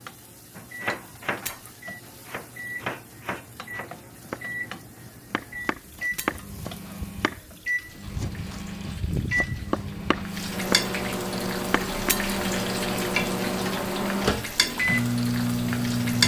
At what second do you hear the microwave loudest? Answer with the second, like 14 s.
15 s.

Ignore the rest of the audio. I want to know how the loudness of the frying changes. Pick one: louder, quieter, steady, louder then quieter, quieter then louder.
louder.